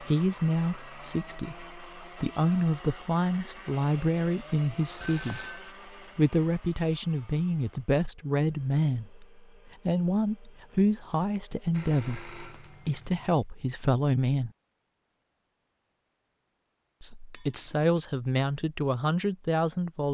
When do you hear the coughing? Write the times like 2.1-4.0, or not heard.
not heard.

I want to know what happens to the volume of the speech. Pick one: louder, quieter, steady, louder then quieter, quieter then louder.
steady.